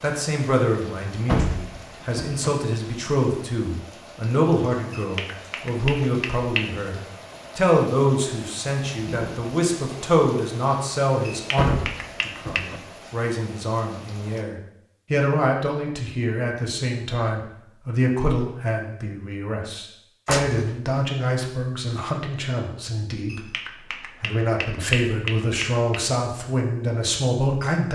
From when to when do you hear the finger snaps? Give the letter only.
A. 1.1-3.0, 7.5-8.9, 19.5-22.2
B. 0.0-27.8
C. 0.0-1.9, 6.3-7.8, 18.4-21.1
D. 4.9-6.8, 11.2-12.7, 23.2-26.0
D.